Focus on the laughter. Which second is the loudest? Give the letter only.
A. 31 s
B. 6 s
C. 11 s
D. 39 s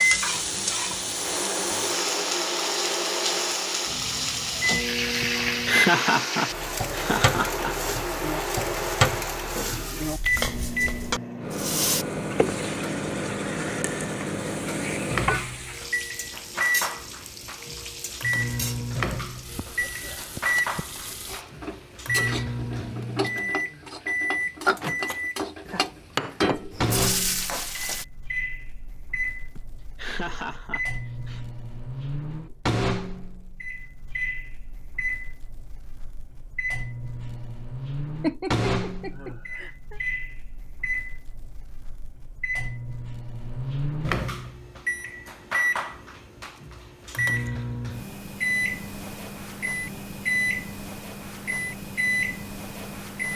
B.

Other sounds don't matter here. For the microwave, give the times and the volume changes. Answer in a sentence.
The microwave can be heard from 0.0 to 53.3 s, at a steady volume.